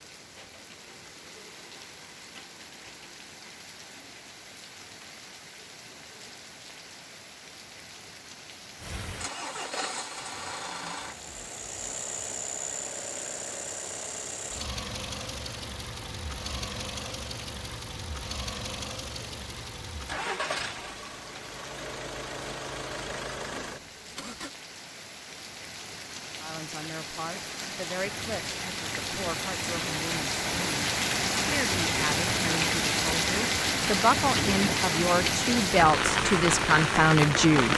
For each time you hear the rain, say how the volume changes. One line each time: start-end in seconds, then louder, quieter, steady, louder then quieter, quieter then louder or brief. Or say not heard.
0.0-37.7 louder.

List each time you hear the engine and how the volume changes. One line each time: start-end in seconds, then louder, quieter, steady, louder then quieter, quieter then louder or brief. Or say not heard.
8.8-24.5 steady.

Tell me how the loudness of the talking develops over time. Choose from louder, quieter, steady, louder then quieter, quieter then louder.
louder.